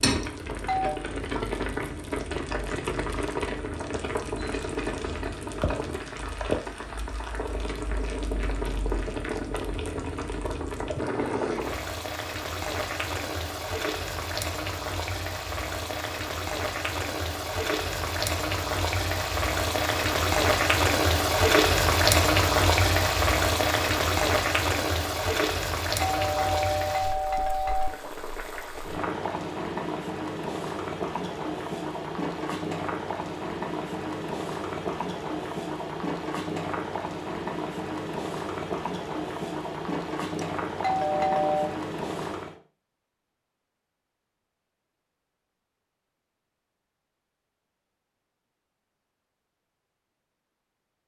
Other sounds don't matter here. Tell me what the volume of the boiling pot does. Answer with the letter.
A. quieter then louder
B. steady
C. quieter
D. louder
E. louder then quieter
E.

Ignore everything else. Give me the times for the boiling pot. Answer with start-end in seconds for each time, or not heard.
0.0-42.6.